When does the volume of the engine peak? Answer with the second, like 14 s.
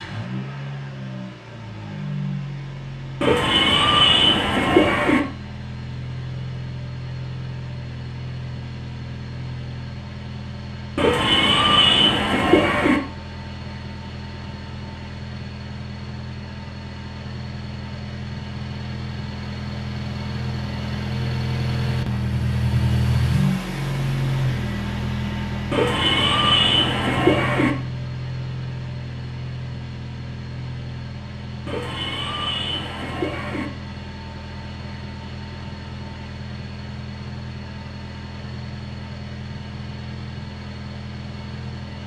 23 s.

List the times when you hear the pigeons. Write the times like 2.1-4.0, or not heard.
3.2-5.2, 10.9-13.0, 25.7-27.8, 31.6-33.7.